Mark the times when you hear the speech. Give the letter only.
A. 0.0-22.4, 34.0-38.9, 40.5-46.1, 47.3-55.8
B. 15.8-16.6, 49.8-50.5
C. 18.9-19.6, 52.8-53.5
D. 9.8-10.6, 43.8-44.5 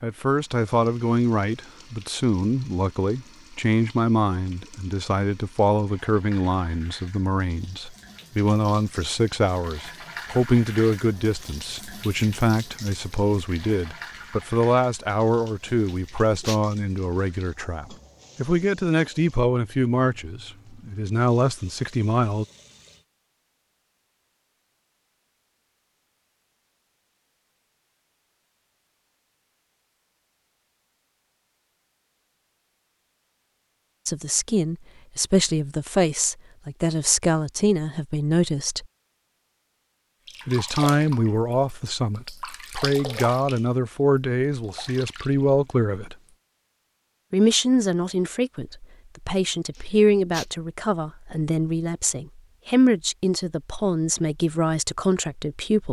A.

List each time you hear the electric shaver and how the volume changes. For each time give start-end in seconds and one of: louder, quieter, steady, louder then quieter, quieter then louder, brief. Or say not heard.
not heard.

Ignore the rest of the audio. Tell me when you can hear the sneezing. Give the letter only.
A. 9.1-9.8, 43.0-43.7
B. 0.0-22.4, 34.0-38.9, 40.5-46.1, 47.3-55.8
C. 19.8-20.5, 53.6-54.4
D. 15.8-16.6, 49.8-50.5
D.